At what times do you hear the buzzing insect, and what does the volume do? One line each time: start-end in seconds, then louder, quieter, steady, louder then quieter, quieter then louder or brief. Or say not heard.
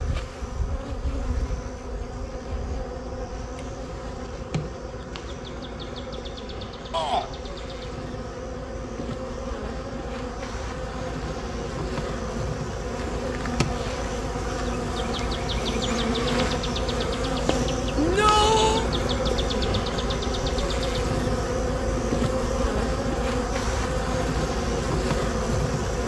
0.0-26.0 louder.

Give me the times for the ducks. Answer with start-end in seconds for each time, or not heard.
not heard.